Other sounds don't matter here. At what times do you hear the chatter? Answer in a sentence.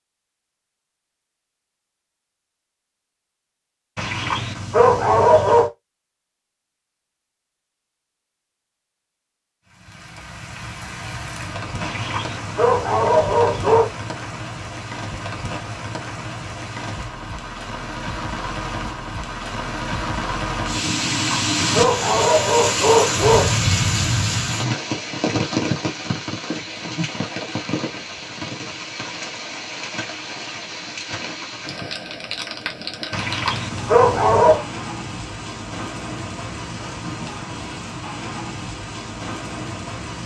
You can't hear the chatter here.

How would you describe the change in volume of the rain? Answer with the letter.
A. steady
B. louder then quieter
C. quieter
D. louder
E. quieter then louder
B.